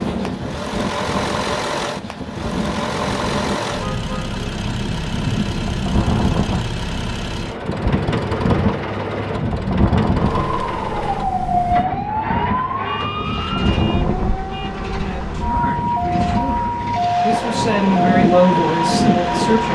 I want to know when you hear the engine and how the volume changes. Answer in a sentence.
You can hear the engine from 0.0 to 19.6 s, getting quieter.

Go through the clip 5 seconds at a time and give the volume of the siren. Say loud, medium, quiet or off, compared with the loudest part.
off, off, loud, loud.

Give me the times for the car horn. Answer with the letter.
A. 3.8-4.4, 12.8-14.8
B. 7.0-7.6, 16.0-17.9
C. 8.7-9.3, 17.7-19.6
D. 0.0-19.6
A.